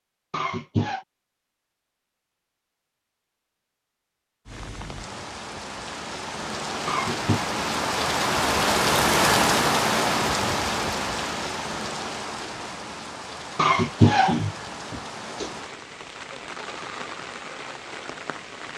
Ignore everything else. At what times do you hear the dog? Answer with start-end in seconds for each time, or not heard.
not heard.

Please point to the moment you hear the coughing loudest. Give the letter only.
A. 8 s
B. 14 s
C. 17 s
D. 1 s
B.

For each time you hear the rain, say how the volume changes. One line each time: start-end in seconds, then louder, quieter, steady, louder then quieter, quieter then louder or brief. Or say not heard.
4.5-18.7 louder then quieter.